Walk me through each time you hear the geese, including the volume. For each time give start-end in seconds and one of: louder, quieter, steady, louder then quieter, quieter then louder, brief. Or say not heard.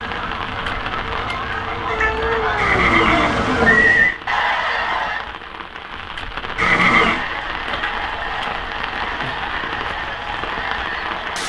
0.0-5.3 louder
7.0-11.4 steady.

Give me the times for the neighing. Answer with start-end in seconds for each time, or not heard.
2.5-4.2, 6.5-7.2.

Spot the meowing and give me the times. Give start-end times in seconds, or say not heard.
1.9-3.9.